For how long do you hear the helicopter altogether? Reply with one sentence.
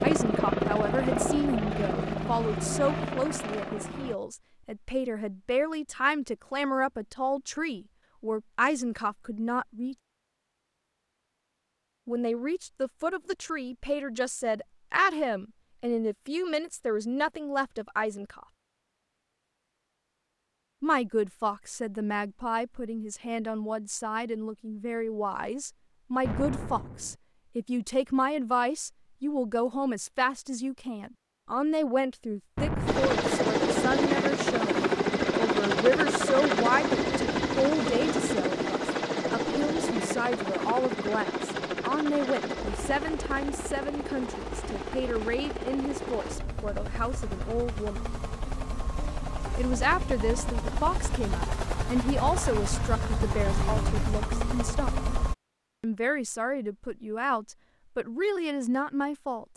You can hear the helicopter for 27 seconds altogether.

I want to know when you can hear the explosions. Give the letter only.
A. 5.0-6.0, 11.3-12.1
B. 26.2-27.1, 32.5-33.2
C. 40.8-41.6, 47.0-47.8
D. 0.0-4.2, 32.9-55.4
B.